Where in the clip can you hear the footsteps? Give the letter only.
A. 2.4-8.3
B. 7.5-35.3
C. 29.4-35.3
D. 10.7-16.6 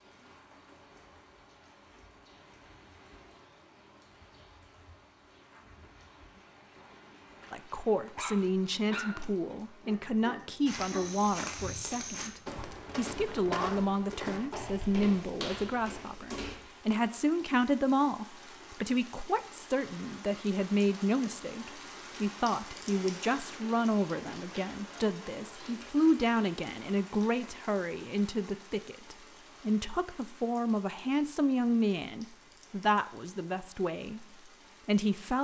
D.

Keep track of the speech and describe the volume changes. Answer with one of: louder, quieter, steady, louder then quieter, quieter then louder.
steady.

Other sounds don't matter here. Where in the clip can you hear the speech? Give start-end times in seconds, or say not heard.
7.5-35.3.